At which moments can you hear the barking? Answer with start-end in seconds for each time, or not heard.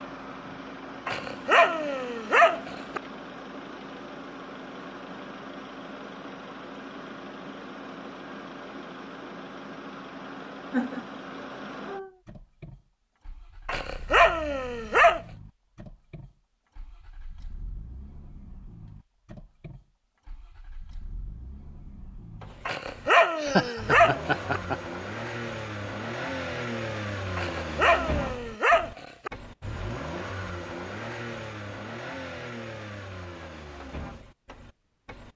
1.1-3.0, 13.7-15.2, 22.6-24.6, 27.4-29.3.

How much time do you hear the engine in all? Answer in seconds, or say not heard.
35 s.